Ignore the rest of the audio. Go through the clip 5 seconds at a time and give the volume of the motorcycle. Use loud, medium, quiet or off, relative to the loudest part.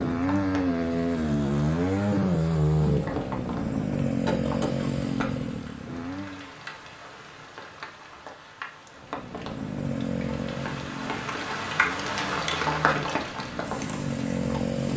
loud, medium, medium.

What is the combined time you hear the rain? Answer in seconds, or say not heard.
15 s.